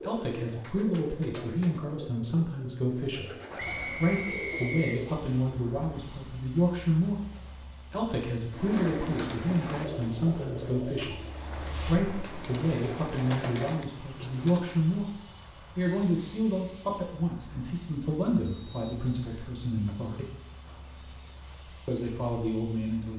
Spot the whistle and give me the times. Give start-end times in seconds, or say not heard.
3.5-5.0, 18.4-19.6.